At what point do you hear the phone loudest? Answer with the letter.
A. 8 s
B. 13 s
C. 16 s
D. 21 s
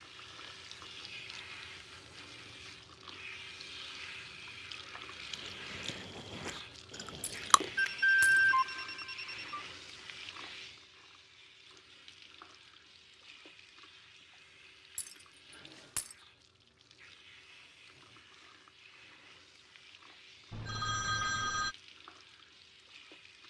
A.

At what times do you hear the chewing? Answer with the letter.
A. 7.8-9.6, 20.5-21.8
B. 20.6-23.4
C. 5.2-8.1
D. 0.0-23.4
C.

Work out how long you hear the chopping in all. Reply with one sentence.
You can't hear the chopping here.